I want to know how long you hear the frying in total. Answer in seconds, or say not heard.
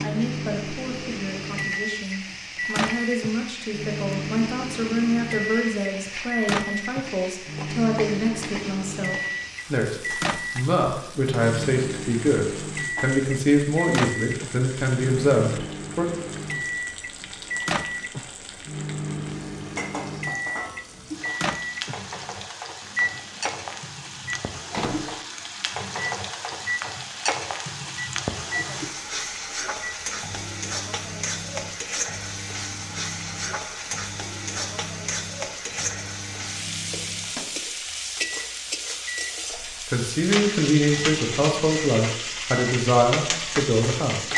44 s.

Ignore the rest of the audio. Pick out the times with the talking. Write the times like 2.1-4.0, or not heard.
0.0-16.1, 39.9-44.3.